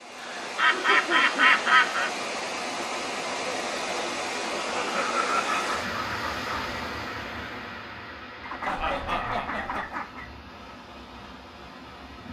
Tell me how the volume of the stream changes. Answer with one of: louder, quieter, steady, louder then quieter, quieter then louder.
quieter.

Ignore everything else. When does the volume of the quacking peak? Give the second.
2 s.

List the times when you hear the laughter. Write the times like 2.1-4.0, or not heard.
0.1-1.8, 4.5-5.6, 8.7-9.9.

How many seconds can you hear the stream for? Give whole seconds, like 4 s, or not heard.
12 s.